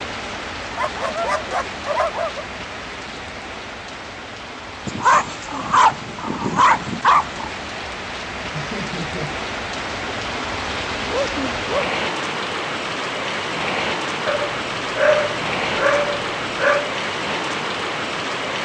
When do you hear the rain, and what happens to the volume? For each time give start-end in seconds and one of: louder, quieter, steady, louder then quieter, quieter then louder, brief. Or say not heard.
0.0-18.6 louder.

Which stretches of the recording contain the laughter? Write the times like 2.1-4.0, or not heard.
8.5-9.3.